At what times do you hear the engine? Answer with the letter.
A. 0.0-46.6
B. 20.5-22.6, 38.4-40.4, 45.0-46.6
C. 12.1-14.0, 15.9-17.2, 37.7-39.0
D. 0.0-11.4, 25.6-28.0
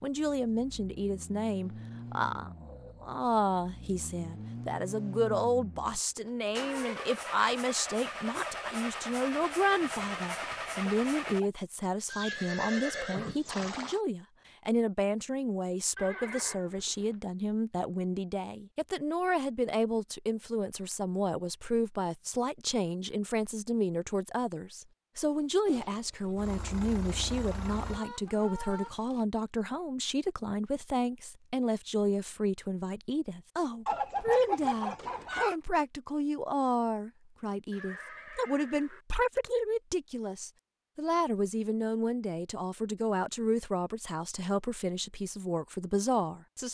D.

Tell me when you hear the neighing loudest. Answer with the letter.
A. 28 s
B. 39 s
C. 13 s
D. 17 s
C.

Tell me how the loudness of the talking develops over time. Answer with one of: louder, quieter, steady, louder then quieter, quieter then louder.
steady.